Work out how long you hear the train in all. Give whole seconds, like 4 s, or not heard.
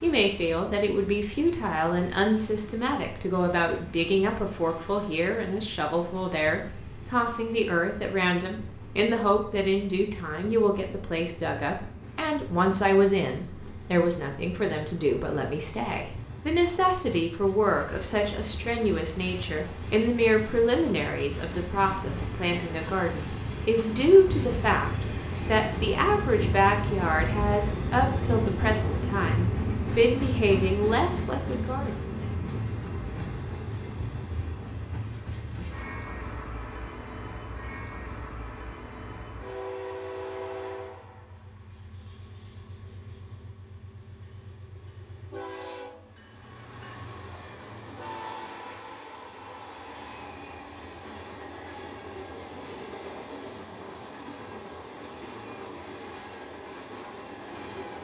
58 s.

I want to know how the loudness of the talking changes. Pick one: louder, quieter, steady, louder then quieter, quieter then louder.
steady.